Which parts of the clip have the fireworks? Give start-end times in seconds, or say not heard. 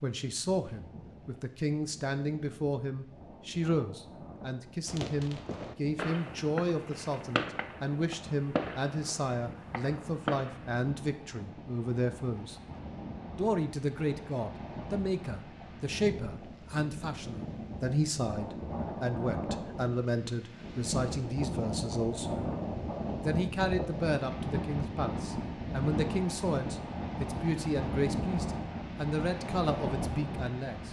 4.8-10.8.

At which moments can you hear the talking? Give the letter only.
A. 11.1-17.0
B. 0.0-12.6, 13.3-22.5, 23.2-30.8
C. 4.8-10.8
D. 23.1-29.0
B.